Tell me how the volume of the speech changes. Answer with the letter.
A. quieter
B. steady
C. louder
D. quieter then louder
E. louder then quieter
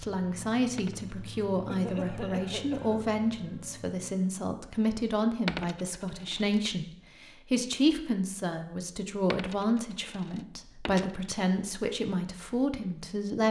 B.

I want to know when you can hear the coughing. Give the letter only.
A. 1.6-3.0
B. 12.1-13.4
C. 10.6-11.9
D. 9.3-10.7
A.